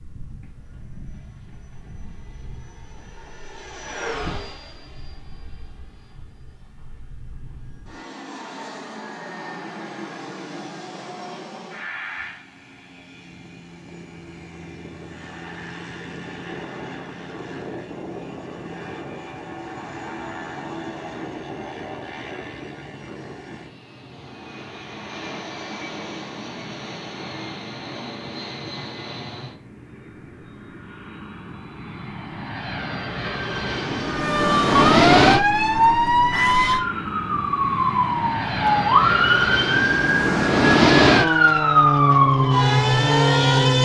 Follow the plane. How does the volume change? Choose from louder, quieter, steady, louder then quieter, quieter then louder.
louder.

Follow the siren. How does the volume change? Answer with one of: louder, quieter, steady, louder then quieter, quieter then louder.
steady.